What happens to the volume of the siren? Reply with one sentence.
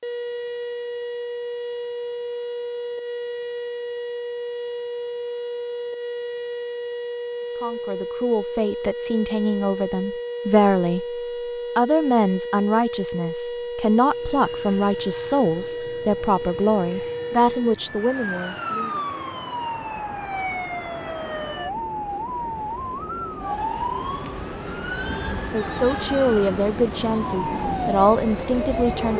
The loudness of the siren stays about the same.